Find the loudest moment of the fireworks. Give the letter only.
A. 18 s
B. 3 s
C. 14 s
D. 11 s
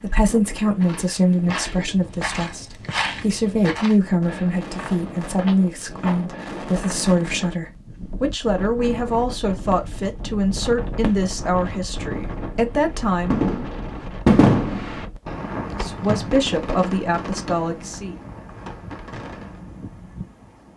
C.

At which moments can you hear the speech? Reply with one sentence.
You can hear the speech from 0.0 to 13.4 s and from 15.7 to 18.1 s.